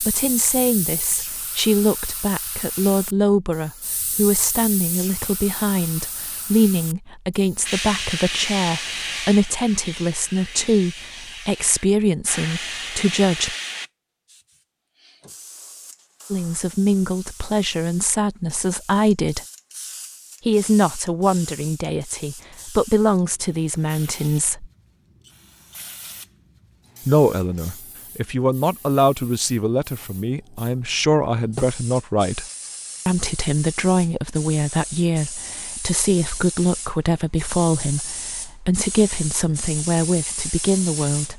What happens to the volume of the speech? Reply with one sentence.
The volume of the speech stays about the same.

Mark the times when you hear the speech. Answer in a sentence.
You can hear the speech from 0.0 to 13.6 s, from 16.3 to 19.4 s, from 20.4 to 24.7 s, from 27.1 to 32.5 s and from 33.0 to 41.3 s.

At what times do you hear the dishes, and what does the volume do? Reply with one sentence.
The dishes can't be heard in this clip.